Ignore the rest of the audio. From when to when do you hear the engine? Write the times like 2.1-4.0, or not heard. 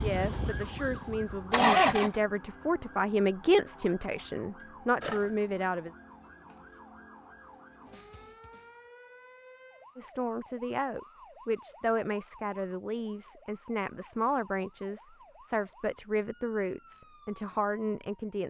0.0-2.2.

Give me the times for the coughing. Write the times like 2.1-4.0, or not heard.
not heard.